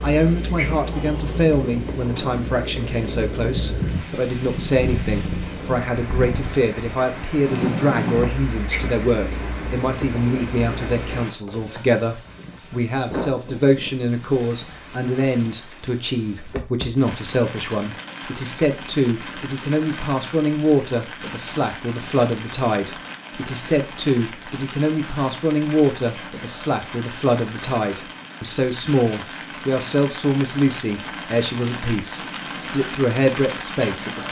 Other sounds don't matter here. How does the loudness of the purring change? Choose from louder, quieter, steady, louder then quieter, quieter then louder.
louder then quieter.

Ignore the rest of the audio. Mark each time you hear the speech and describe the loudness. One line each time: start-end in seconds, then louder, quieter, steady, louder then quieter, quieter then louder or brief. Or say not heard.
0.0-34.2 steady.